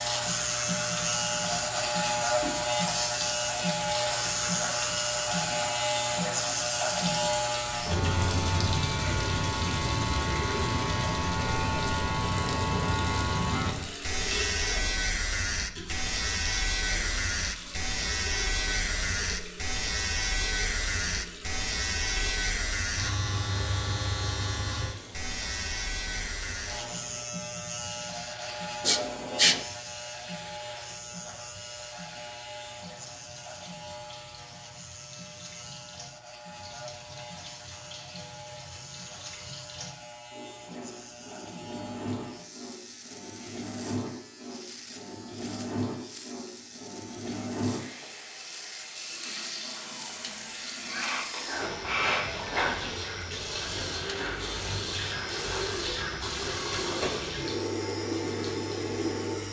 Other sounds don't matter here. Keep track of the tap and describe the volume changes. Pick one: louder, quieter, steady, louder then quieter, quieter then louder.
quieter then louder.